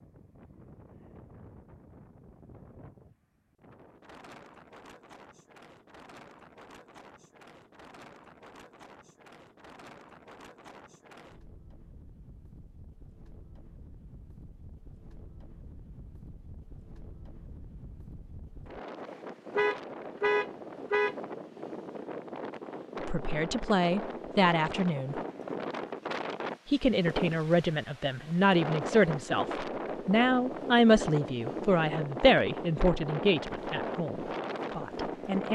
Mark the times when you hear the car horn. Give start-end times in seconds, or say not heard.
19.6-21.1.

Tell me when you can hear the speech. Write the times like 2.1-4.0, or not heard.
23.0-25.2, 26.6-35.4.